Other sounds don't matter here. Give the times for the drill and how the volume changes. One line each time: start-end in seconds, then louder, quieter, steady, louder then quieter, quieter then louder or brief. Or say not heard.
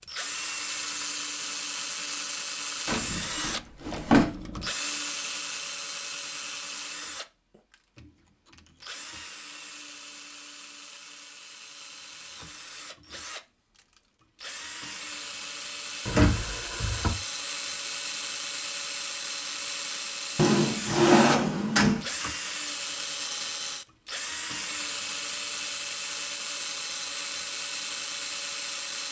0.0-29.0 quieter then louder.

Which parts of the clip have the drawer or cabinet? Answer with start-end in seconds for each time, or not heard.
2.9-4.7, 16.1-17.1, 20.4-22.1.